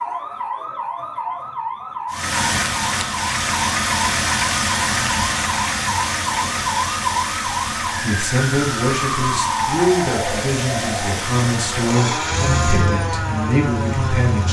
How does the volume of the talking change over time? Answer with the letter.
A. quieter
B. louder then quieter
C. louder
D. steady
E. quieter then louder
D.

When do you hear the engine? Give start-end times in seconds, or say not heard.
2.1-14.4.